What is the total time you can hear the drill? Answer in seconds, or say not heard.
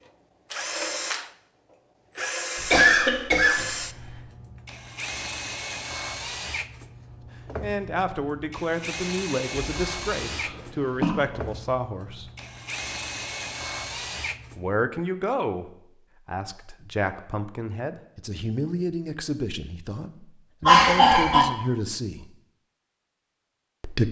15 s.